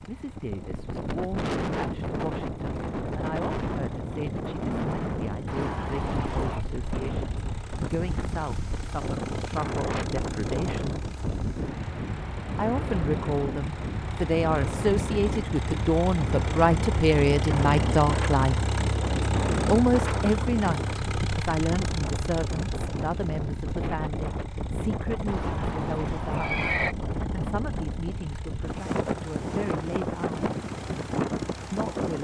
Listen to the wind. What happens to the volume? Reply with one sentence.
The volume of the wind stays about the same.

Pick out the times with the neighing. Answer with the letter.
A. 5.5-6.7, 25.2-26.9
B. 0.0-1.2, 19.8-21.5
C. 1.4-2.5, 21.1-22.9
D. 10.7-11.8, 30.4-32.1
A.